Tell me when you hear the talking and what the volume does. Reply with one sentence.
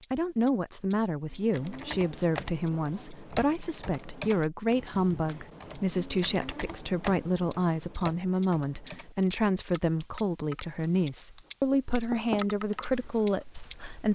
You can hear the talking from 0.1 to 14.1 s, at a steady volume.